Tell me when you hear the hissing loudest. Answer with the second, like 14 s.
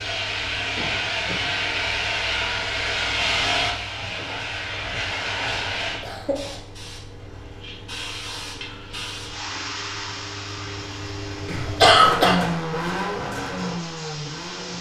3 s.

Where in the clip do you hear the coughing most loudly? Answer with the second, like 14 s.
12 s.